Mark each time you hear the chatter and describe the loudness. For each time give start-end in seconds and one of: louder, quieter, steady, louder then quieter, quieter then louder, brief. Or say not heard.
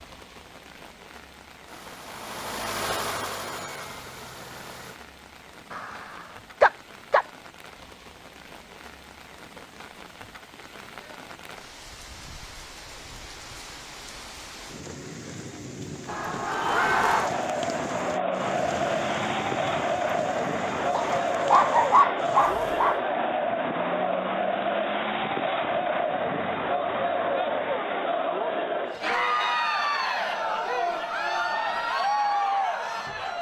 16.1-33.3 steady.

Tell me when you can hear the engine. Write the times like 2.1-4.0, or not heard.
1.6-5.0.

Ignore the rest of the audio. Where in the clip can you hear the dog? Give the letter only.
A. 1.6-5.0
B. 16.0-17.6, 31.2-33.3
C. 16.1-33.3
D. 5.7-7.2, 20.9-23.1
D.